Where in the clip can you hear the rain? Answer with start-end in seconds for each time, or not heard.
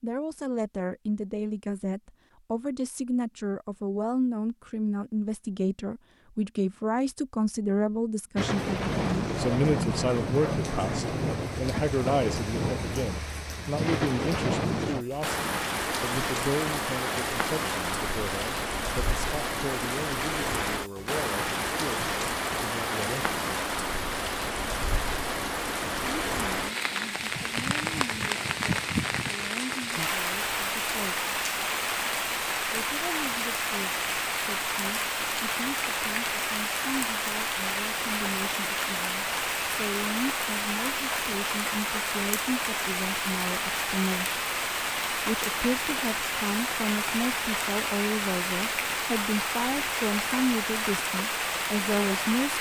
8.3-52.5.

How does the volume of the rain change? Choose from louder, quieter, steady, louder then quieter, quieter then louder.
steady.